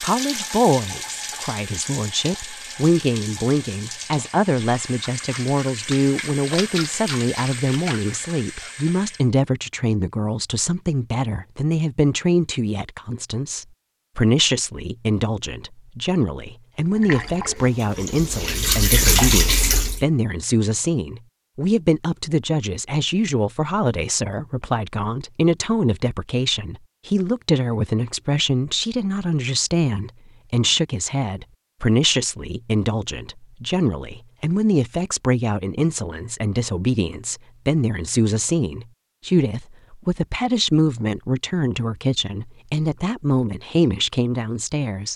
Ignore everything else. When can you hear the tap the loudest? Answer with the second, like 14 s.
19 s.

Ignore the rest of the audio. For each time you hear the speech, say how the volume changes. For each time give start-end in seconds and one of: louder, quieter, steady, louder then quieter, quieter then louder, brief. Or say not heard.
0.0-45.1 steady.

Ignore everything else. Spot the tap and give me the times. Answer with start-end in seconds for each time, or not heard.
0.0-9.3, 16.9-20.1.